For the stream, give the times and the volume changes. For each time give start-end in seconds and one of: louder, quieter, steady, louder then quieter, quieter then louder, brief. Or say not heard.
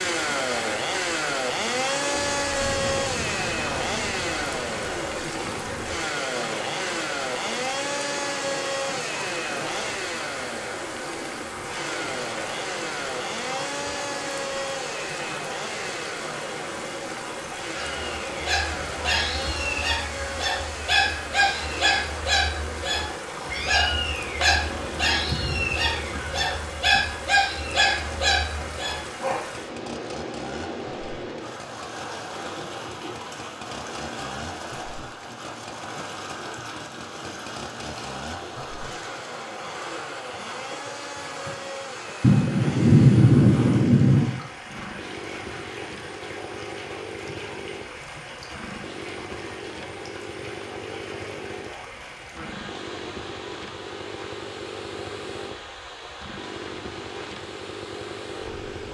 0.0-58.8 quieter.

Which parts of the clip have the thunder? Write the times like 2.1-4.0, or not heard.
2.4-6.0, 25.2-26.6, 42.2-44.2.